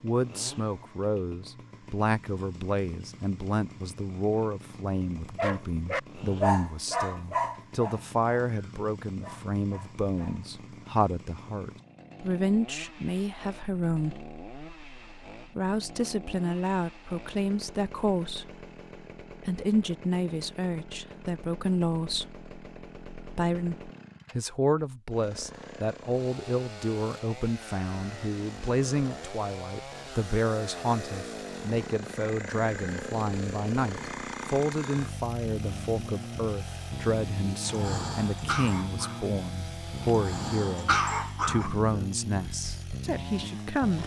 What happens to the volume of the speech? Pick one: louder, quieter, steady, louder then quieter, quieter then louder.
steady.